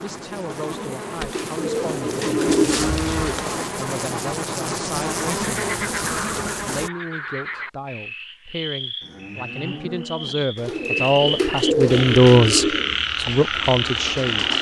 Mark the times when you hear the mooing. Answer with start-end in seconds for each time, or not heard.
2.5-3.7, 9.0-10.5.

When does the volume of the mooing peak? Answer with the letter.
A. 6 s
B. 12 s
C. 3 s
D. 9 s
C.